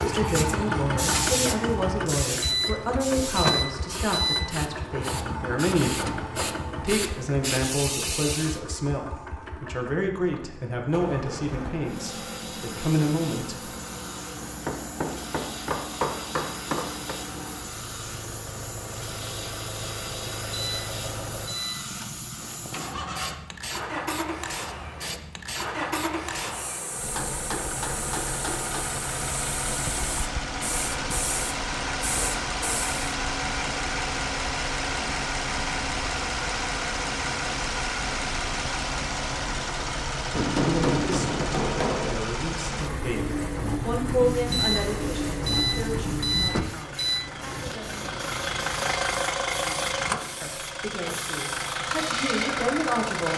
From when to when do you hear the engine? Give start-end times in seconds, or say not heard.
0.0-53.3.